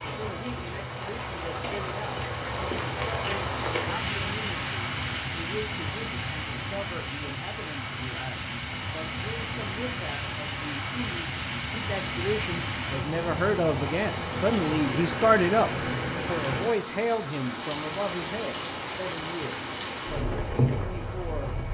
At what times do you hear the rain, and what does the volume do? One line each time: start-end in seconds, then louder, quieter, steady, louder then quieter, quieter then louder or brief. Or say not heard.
0.0-21.6 steady.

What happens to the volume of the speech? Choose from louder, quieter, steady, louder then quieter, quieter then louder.
louder then quieter.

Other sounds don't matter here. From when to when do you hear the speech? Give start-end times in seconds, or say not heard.
0.0-21.5.